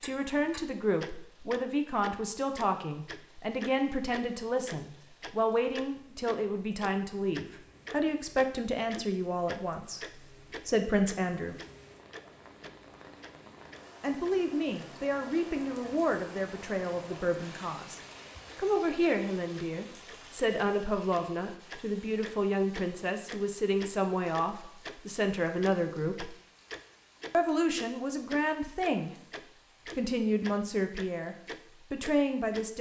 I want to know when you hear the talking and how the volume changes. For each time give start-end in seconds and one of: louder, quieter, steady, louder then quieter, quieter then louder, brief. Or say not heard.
0.0-11.6 steady
14.0-26.3 steady
27.3-29.1 brief
29.9-32.7 brief.